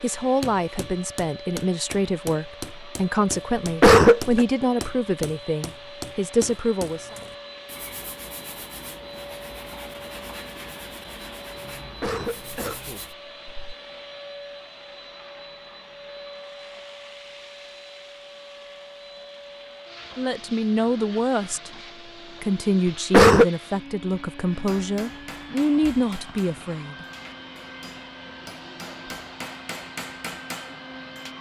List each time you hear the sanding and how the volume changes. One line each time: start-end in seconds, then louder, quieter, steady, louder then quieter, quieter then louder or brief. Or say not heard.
6.9-13.2 steady.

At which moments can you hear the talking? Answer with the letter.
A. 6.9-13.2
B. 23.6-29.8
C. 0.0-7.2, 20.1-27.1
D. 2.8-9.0
C.